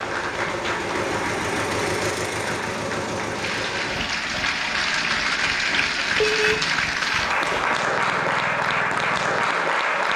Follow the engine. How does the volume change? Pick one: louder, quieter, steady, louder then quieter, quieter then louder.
quieter.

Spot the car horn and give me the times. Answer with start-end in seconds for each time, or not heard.
6.2-6.7.